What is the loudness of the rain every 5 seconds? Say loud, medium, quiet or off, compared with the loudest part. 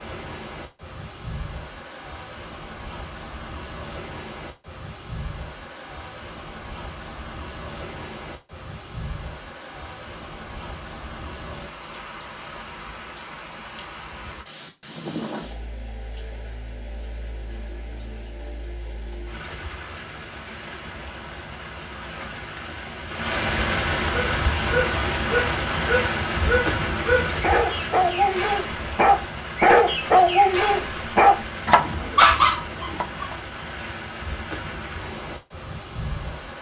medium, medium, medium, medium, loud, loud, medium, medium.